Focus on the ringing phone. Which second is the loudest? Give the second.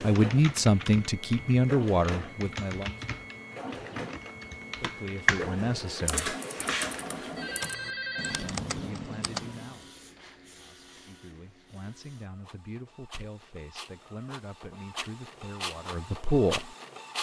8 s.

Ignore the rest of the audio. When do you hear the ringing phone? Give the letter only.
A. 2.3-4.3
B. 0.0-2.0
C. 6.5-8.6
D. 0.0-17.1
C.